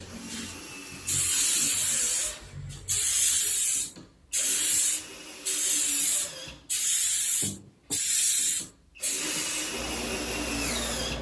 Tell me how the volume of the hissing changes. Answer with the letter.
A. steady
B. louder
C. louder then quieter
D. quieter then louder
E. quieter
E.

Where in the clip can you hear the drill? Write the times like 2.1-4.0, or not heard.
0.0-11.1.